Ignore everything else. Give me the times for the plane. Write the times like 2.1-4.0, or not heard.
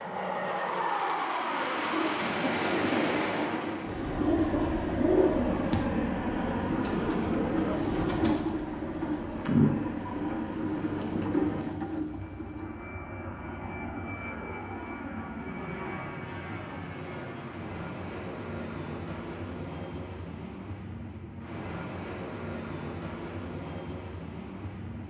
0.0-25.0.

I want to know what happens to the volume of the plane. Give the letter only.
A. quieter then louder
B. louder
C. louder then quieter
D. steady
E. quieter
E.